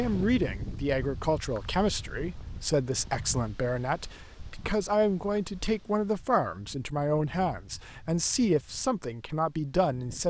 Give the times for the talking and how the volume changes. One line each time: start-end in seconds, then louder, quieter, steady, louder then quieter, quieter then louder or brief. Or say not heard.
0.0-10.2 steady.